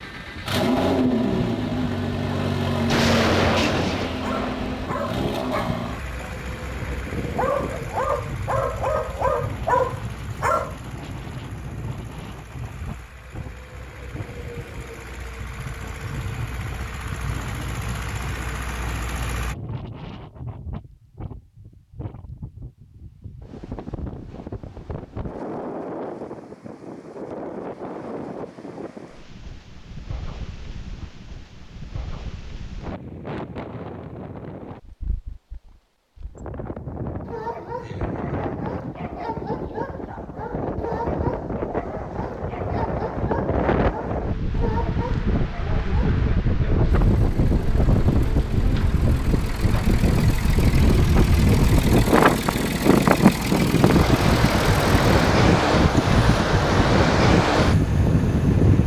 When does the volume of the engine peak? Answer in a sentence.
The loudest moment of the engine is at 1 second.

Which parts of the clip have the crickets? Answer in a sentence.
The crickets can't be heard in this clip.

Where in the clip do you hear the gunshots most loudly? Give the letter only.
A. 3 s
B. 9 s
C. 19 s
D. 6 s
A.